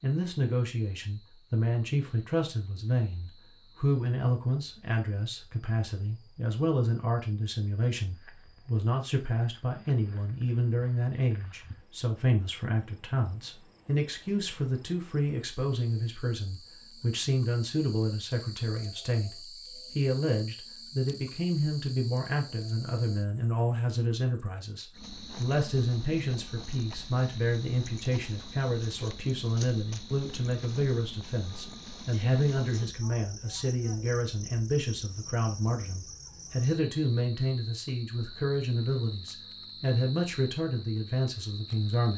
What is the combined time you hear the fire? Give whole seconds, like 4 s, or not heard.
not heard.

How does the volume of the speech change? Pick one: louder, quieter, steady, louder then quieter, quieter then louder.
steady.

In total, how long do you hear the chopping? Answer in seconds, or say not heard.
not heard.